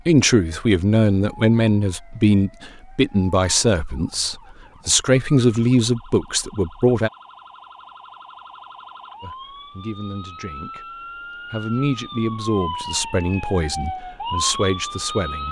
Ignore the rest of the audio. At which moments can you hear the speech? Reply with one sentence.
You can hear the speech from 0.1 to 7.1 s, from 9.2 to 10.8 s and from 11.5 to 15.4 s.